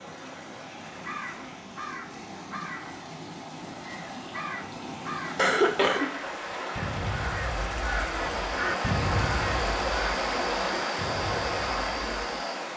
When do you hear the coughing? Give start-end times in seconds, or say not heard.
5.3-6.6.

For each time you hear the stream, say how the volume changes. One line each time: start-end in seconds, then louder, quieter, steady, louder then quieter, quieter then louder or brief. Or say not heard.
0.0-12.7 louder.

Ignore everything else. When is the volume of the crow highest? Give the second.
9 s.